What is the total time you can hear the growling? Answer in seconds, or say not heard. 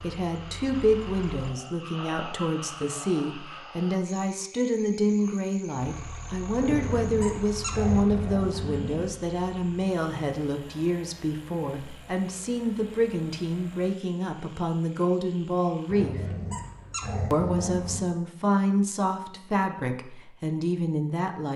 5 s.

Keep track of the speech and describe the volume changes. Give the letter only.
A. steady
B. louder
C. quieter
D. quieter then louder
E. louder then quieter
A.